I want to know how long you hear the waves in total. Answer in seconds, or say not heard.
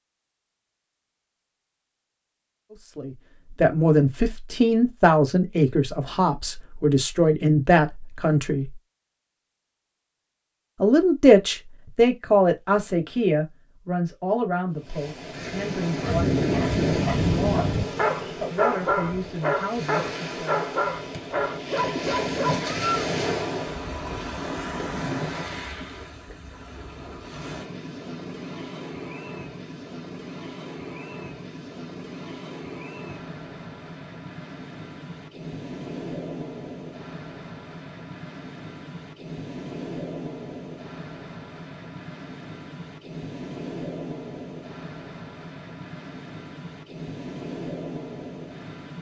34 s.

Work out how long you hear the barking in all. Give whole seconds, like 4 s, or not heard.
7 s.